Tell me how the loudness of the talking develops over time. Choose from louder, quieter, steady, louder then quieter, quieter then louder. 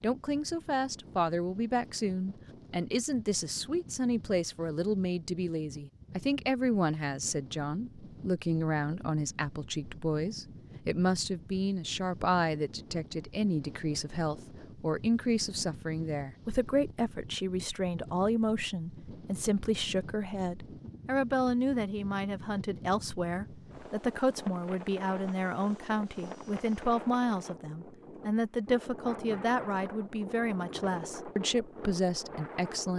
steady.